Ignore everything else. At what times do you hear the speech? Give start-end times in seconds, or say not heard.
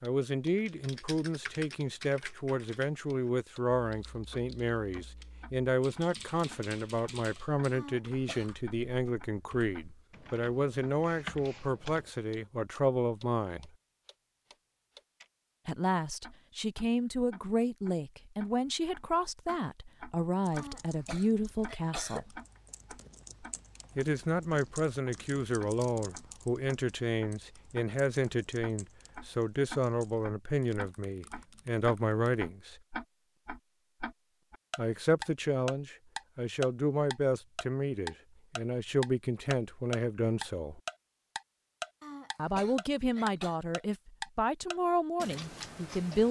0.0-13.7, 15.7-22.3, 23.9-32.8, 34.8-40.8, 42.4-46.2.